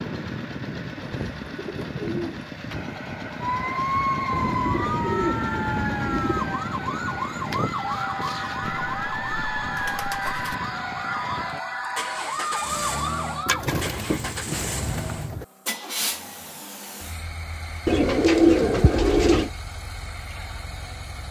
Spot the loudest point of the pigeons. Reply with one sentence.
The loudest moment of the pigeons is at 18 seconds.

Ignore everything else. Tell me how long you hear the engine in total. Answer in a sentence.
You can hear the engine for 21 seconds altogether.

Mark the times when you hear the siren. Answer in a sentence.
The siren can be heard from 3.4 to 13.7 s.